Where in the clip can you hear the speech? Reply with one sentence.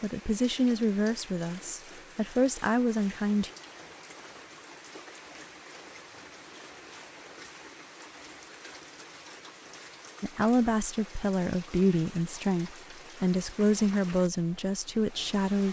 You can hear the speech from 0.0 to 3.5 s and from 10.2 to 15.6 s.